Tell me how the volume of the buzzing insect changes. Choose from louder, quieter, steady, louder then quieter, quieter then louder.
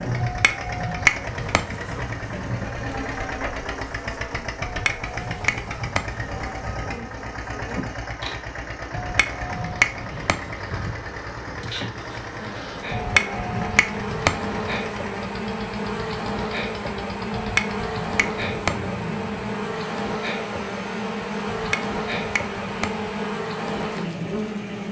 louder.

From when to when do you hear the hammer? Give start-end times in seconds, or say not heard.
0.2-2.1, 4.6-6.2, 8.9-10.7, 12.9-14.6, 17.3-18.9, 21.5-23.1.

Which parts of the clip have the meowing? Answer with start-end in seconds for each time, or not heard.
not heard.